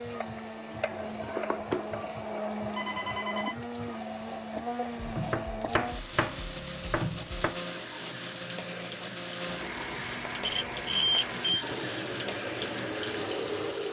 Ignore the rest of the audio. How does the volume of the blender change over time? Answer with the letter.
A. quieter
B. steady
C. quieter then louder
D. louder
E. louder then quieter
B.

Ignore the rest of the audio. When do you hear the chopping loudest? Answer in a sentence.
The loudest moment of the chopping is at 6 seconds.